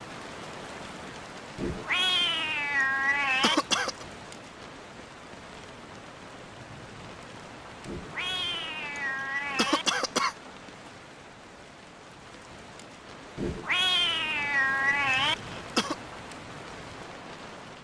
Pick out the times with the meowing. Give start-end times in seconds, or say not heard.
1.6-3.5, 7.8-9.8, 13.3-15.3.